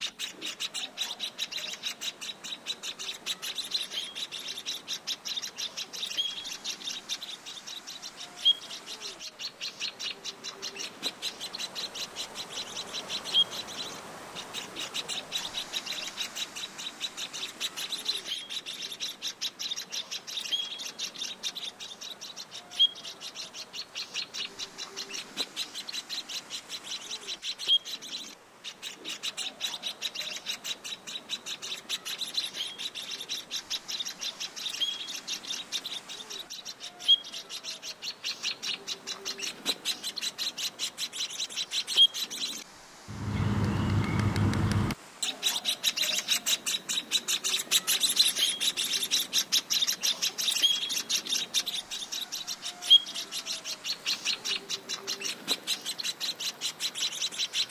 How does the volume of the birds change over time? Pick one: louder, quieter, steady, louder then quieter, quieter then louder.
louder.